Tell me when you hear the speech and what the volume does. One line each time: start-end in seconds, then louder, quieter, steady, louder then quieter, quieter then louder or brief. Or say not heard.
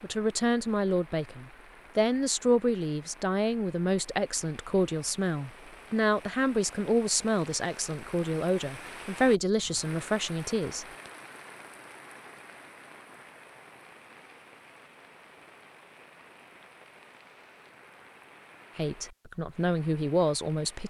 0.0-10.8 steady
18.8-20.8 brief.